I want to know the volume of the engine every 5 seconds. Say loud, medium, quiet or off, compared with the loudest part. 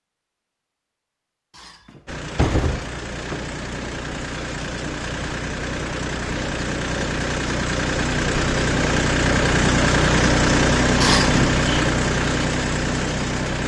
medium, loud, loud.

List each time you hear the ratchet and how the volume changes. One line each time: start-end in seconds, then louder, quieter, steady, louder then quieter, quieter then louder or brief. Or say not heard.
not heard.